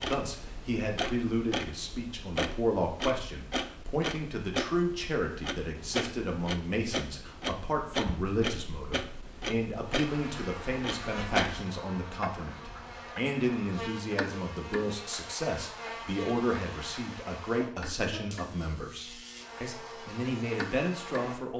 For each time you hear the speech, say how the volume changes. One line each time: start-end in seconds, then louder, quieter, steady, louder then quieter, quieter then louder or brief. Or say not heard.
0.1-21.5 steady.